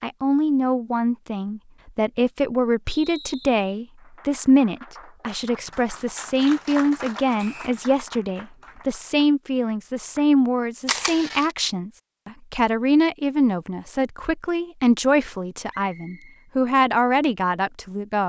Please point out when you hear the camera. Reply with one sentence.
You can hear the camera from 10.8 to 11.6 s.